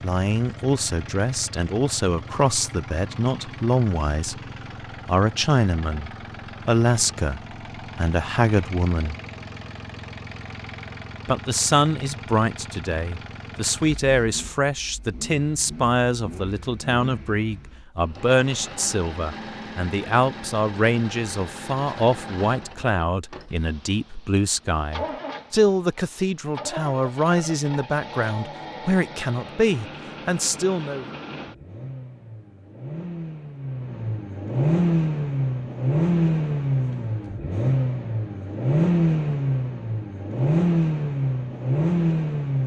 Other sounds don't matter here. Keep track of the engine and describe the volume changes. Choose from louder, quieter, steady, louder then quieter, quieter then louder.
louder.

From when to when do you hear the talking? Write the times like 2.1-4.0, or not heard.
0.0-4.3, 5.0-9.2, 11.2-31.1.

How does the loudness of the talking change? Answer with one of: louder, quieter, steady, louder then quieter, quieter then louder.
steady.